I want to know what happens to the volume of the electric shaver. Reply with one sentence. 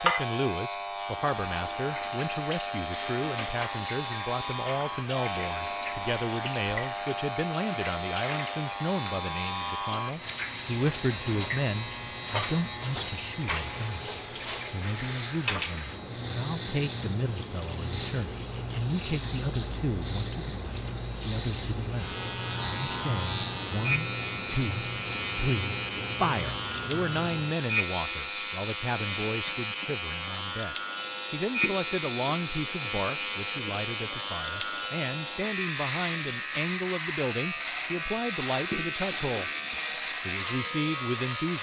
The loudness of the electric shaver stays about the same.